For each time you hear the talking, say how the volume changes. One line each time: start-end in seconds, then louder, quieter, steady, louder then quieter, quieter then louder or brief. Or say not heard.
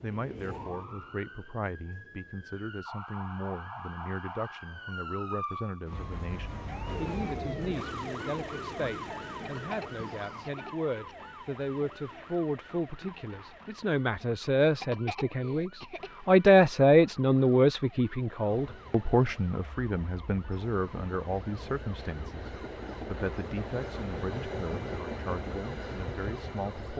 0.0-26.9 louder then quieter.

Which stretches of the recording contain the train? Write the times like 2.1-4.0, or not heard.
0.0-2.7, 6.8-10.6, 18.4-26.9.